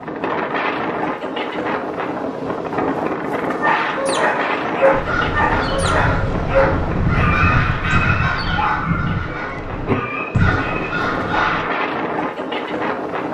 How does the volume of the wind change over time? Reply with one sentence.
The volume of the wind goes down, then up.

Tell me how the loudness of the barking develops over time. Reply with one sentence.
The volume of the barking goes down.